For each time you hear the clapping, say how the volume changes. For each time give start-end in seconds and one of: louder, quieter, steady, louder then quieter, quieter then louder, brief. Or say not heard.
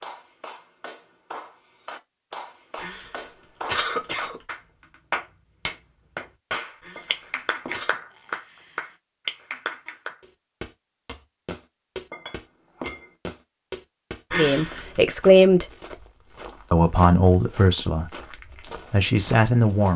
0.0-10.2 louder.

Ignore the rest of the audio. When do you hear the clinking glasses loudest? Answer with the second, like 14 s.
13 s.